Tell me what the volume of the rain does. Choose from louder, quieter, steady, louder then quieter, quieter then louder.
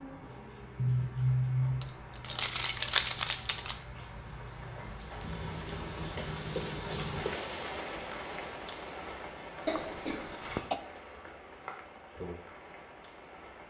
louder then quieter.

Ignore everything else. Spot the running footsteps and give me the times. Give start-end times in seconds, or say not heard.
not heard.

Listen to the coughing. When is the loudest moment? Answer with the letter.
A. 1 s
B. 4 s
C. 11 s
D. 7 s
A.